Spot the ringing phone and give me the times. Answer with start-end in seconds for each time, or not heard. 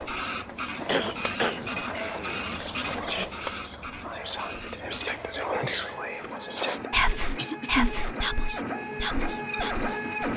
not heard.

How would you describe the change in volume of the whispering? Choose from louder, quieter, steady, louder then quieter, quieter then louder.
louder then quieter.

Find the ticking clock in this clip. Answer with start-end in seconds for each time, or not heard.
not heard.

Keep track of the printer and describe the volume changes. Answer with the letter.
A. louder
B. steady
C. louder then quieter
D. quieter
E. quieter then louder
E.